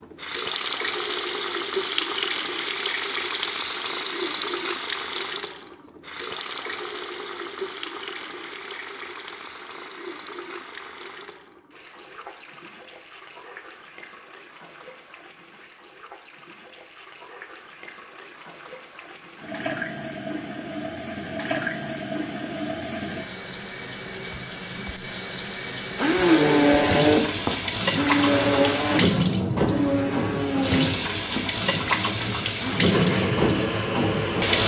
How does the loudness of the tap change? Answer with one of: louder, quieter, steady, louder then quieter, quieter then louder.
quieter then louder.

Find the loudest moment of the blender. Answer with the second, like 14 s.
27 s.